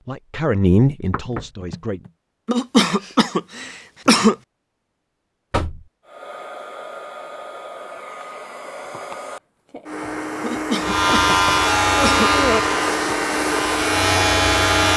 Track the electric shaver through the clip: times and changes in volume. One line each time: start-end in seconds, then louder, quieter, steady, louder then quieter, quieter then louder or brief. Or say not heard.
10.8-14.9 quieter then louder.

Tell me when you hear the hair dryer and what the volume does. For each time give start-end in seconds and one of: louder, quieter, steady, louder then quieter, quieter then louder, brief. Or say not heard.
6.0-14.9 louder.